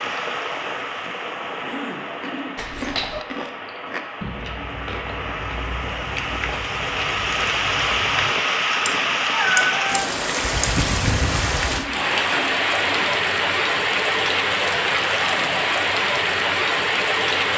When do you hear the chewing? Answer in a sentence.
You can hear the chewing from 2.2 to 8.3 s.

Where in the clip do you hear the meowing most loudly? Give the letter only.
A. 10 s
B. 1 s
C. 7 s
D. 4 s
A.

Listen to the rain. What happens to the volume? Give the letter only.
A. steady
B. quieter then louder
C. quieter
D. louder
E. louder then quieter
D.